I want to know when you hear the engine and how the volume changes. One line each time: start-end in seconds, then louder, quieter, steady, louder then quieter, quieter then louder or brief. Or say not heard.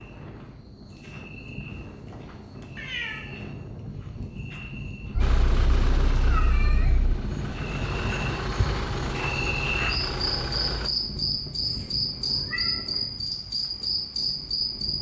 5.2-10.9 quieter then louder.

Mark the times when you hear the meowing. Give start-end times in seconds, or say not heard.
1.8-3.4, 5.1-7.2, 11.6-13.1.